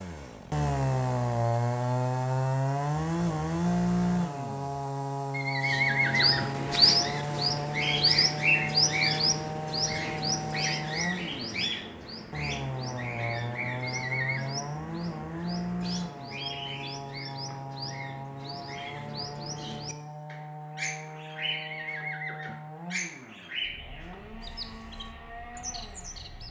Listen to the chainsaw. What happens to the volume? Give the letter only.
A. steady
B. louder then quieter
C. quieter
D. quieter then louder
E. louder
C.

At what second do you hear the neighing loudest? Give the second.
6 s.